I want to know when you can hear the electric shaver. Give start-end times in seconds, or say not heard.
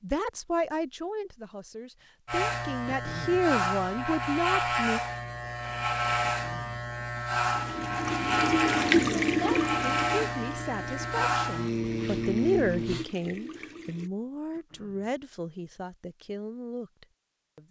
2.2-13.1.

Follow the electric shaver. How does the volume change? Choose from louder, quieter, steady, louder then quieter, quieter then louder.
steady.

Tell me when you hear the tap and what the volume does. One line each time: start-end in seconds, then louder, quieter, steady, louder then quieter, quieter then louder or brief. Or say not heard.
7.5-14.1 quieter.